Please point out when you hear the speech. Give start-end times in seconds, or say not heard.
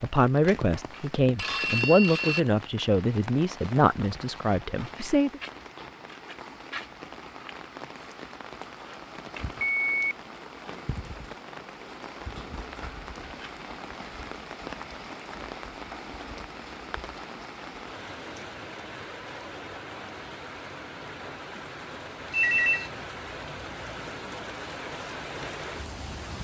0.0-5.4.